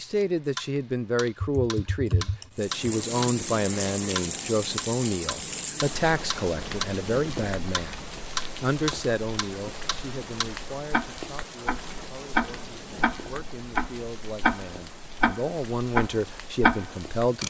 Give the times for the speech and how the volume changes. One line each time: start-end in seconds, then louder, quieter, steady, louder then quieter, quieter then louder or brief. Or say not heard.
0.0-17.4 quieter then louder.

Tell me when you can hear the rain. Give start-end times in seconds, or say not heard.
2.5-17.4.